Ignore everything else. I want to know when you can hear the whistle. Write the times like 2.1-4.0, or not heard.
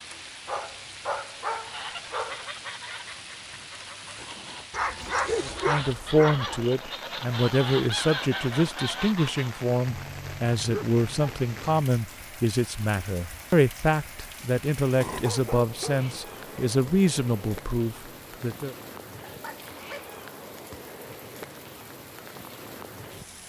not heard.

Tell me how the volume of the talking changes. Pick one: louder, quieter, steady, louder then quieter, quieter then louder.
steady.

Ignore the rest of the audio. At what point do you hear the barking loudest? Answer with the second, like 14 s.
5 s.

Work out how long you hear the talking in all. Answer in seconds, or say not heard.
13 s.